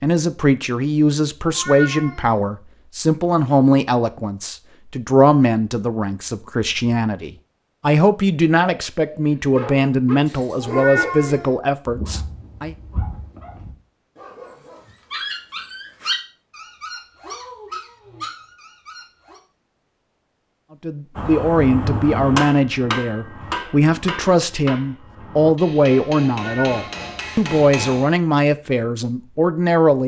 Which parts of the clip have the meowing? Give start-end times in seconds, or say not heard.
1.4-2.4, 10.6-11.6, 26.4-27.1.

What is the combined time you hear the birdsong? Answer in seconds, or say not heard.
not heard.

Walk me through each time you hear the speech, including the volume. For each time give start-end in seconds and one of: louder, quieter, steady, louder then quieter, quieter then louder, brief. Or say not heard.
0.0-12.8 steady
20.8-30.0 steady.